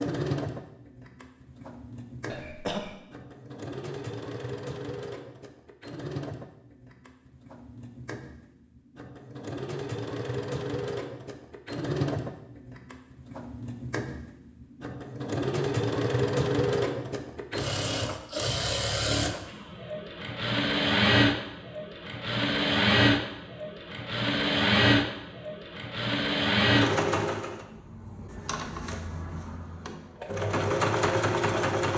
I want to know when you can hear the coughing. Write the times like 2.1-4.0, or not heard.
2.2-3.0.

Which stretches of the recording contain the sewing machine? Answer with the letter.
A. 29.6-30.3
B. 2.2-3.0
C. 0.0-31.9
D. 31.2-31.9
C.